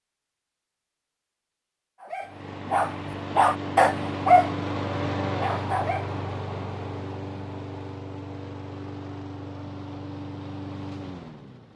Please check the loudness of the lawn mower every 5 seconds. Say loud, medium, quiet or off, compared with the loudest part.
loud, loud, medium.